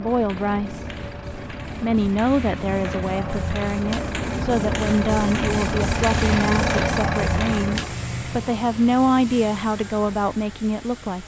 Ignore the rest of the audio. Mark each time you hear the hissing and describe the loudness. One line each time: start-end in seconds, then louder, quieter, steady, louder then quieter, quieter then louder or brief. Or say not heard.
0.0-11.2 louder then quieter.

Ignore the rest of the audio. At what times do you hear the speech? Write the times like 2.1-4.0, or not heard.
0.0-0.8, 1.8-11.2.